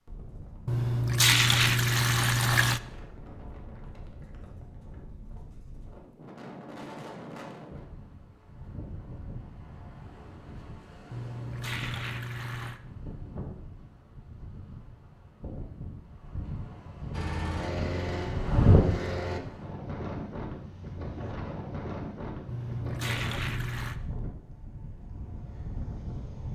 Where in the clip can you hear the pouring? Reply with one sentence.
The pouring can be heard from 0.7 to 2.8 s, from 11.1 to 12.8 s and from 22.4 to 23.9 s.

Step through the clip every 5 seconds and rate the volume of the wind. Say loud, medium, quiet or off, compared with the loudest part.
quiet, quiet, quiet, loud, medium, medium.